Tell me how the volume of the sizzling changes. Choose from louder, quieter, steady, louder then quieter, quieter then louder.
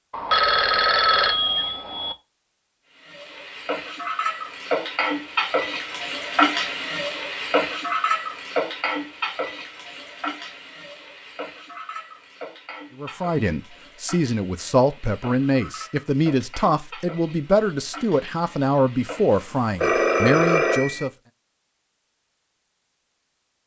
quieter.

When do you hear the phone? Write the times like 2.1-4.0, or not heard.
0.1-2.1, 19.8-21.1.